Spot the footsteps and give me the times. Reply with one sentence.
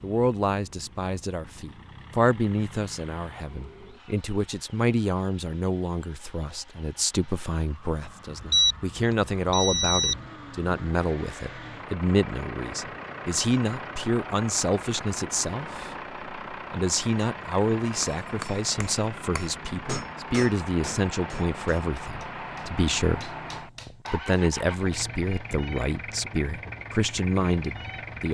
The footsteps can't be heard in this clip.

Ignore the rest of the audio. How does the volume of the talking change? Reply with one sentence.
The loudness of the talking stays about the same.